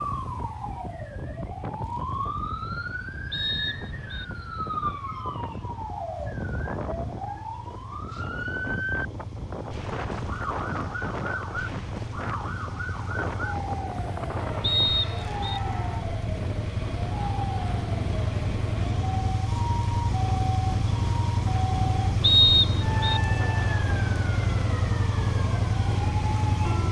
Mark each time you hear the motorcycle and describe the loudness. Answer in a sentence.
The motorcycle can be heard from 0.0 to 26.8 s, getting louder.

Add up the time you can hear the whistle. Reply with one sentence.
The whistle can be heard for 3 seconds in total.